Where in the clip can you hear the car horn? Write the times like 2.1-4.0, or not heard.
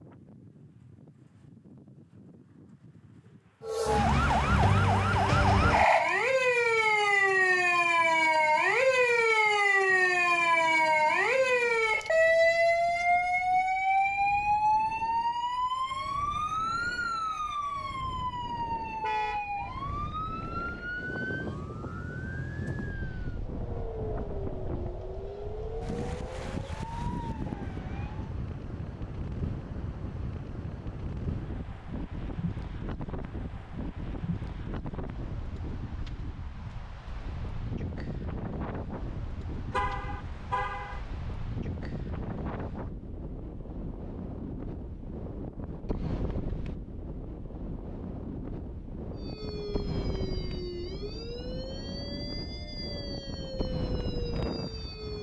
19.0-19.5, 39.7-41.0.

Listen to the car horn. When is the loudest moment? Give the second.
40 s.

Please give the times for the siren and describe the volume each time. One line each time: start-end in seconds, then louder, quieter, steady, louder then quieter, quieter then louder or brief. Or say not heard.
3.6-28.4 quieter
49.1-55.1 steady.